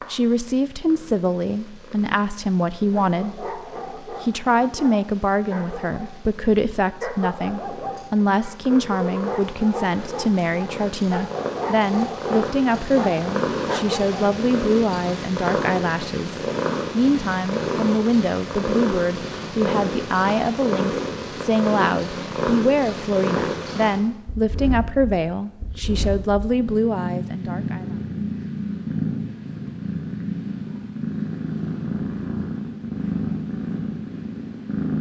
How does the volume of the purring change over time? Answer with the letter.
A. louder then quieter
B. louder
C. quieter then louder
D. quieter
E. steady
B.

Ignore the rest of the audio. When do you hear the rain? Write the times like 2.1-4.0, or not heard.
not heard.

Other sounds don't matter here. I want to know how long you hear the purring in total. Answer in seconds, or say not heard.
35 s.